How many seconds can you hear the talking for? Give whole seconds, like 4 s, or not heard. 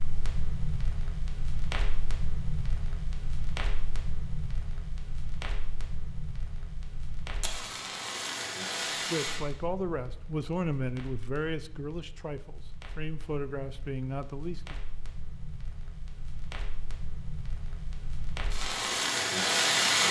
6 s.